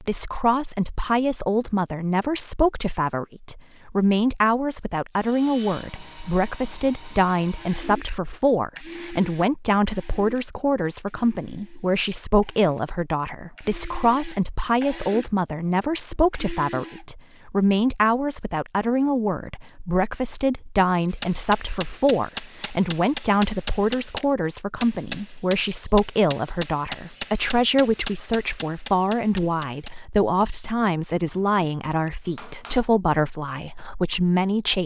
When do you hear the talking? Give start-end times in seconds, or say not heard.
0.0-34.8.